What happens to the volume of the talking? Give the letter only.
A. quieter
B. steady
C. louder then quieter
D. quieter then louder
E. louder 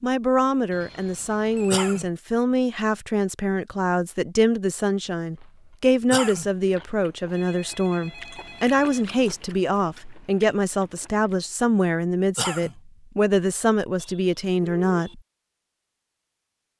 B.